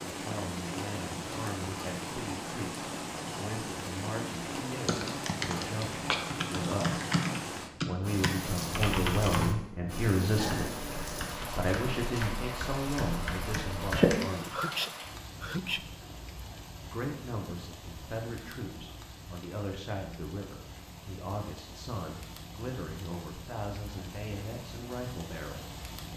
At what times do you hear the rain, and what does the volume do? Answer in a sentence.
The rain can be heard from 0.0 to 26.1 s, getting quieter.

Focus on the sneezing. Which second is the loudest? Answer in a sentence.
The volume of the sneezing peaks at 15 seconds.